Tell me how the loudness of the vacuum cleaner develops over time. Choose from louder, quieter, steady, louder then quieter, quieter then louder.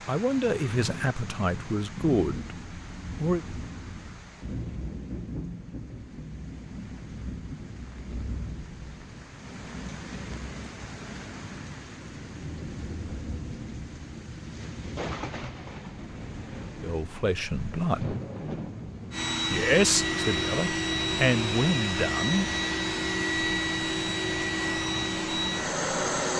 steady.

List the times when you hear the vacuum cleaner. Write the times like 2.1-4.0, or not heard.
19.1-26.3.